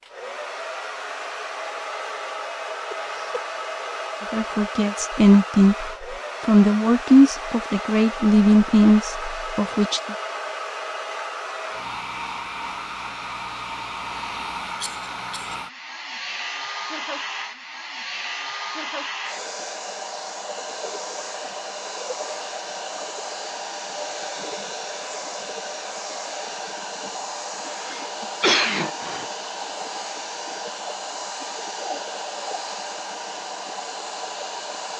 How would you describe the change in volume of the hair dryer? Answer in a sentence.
The loudness of the hair dryer stays about the same.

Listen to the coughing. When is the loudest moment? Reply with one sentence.
The loudest moment of the coughing is at 29 seconds.